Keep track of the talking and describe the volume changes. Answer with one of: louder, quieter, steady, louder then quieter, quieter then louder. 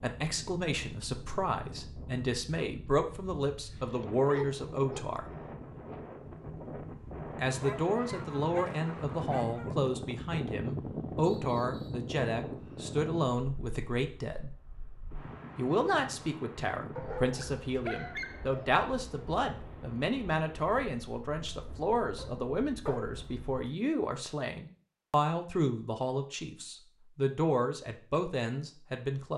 steady.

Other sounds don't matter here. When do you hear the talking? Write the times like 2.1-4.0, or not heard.
0.0-5.2, 7.3-14.5, 15.6-29.3.